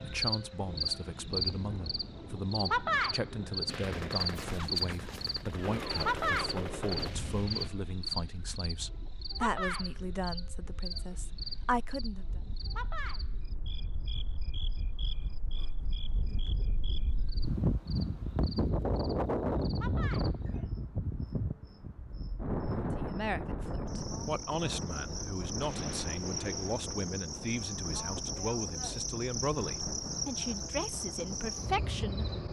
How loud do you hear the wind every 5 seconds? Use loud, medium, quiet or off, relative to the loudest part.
quiet, quiet, quiet, loud, loud, medium, medium.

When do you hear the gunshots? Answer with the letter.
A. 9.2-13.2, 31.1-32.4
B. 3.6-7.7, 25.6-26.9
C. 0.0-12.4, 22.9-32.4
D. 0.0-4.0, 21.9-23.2
B.